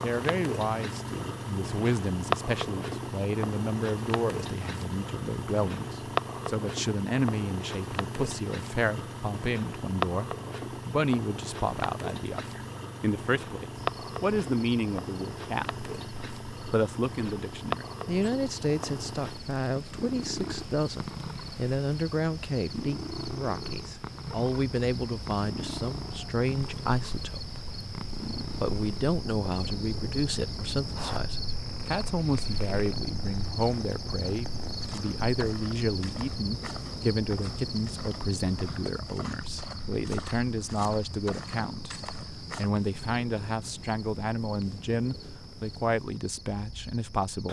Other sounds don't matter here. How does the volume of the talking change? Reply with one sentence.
The volume of the talking stays about the same.